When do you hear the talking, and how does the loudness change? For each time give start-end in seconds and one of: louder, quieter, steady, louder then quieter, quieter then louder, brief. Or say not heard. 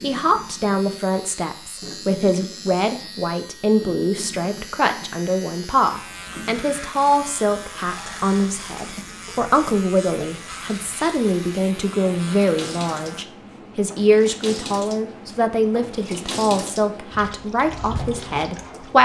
0.0-18.9 steady.